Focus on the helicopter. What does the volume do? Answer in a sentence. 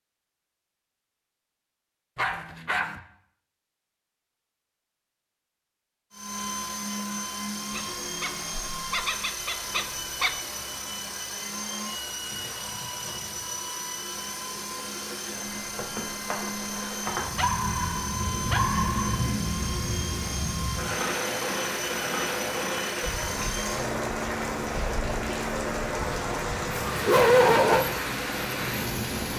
The loudness of the helicopter stays about the same.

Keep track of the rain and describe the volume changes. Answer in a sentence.
The volume of the rain goes up.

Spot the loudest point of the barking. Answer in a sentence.
The loudest moment of the barking is at 27 seconds.